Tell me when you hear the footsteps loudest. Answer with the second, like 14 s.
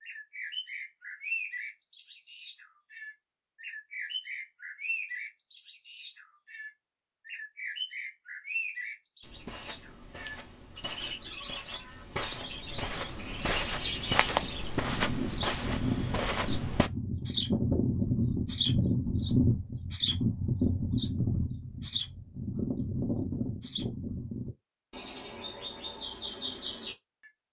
14 s.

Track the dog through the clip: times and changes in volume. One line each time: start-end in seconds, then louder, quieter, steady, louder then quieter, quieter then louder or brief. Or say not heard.
not heard.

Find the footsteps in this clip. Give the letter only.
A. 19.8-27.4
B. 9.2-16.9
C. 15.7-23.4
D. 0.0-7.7
B.